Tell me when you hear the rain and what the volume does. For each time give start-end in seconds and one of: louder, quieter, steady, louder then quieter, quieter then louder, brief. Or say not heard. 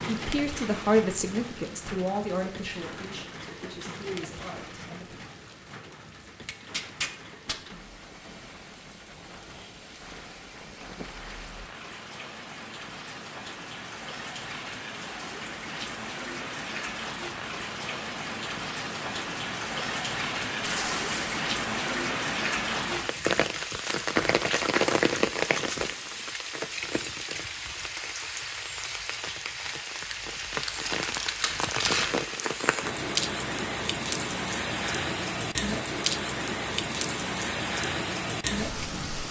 0.0-39.2 louder.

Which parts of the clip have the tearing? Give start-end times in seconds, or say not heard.
6.5-7.5, 20.6-21.4, 30.1-32.2.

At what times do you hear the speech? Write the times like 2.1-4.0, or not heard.
0.0-5.2.